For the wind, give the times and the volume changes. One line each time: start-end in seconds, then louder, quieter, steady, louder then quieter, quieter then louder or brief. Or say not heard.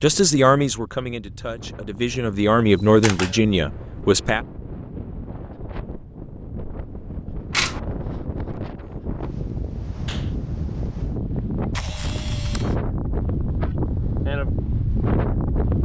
0.0-15.7 louder.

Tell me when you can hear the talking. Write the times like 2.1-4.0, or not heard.
0.0-4.4.